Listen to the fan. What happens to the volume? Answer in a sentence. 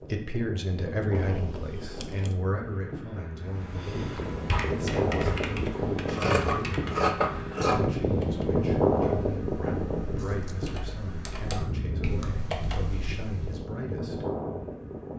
The volume of the fan goes up, then down.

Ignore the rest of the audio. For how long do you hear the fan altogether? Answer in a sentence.
You can hear the fan for 15 seconds altogether.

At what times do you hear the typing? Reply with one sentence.
The typing can be heard from 3.5 to 13.7 s.